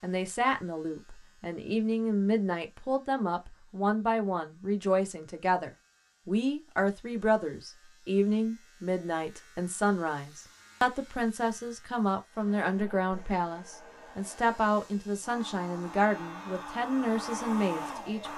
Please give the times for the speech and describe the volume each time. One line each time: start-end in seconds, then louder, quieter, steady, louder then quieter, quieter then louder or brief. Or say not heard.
0.0-18.3 steady.